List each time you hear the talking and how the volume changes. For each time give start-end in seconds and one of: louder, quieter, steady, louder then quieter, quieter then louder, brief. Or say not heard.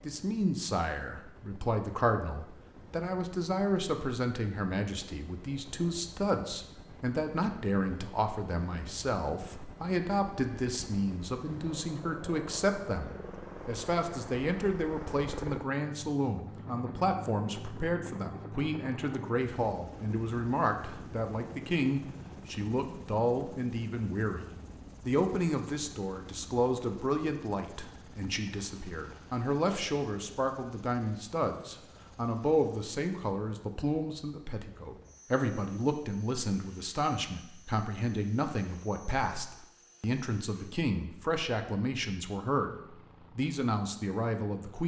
0.0-44.8 steady.